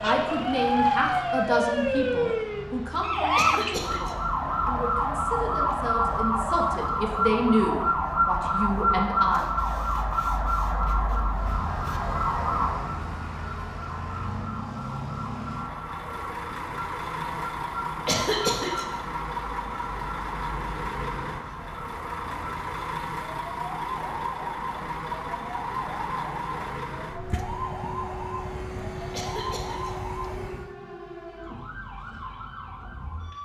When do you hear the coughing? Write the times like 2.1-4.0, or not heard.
3.4-4.2, 18.1-18.9, 29.1-29.9.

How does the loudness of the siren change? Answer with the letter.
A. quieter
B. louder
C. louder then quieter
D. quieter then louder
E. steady
A.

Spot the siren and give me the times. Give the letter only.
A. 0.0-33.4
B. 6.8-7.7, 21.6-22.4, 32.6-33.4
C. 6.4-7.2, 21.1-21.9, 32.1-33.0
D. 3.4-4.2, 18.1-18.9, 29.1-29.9
A.